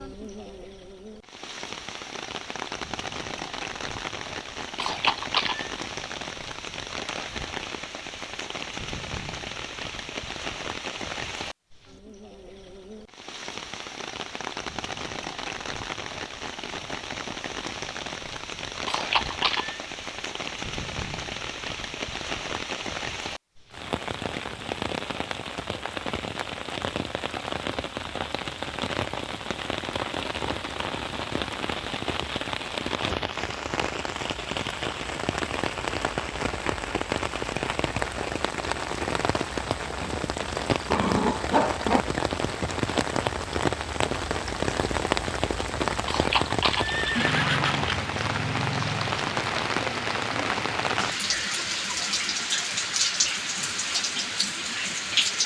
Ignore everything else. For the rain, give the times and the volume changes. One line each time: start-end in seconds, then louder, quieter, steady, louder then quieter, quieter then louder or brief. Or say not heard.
0.0-55.4 louder.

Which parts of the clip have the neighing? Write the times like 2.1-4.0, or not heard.
4.8-5.7, 18.9-19.8, 46.0-48.0.